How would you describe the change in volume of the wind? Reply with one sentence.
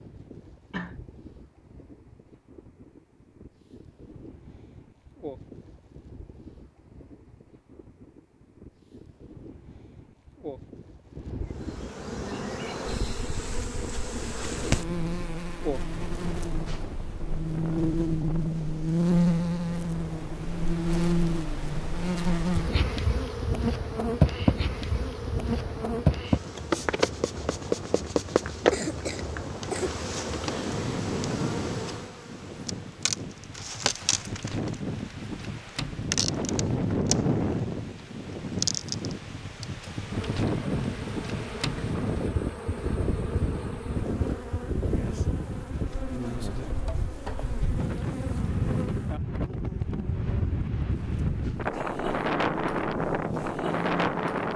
The volume of the wind goes up.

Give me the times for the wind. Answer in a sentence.
You can hear the wind from 0.0 to 54.5 s.